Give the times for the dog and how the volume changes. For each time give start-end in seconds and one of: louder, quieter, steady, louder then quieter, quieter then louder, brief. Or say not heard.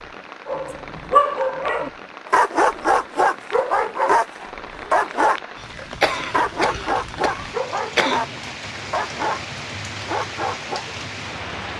0.5-10.8 quieter.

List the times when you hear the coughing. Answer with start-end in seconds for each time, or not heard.
5.8-8.2.